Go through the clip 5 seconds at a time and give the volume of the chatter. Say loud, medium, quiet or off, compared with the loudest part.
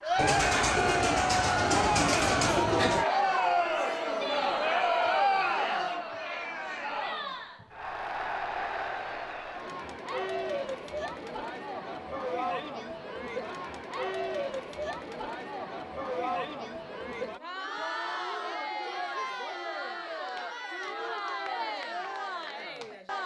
loud, medium, medium, medium, medium.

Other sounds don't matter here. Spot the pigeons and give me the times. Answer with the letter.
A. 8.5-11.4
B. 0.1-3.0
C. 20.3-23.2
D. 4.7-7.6
B.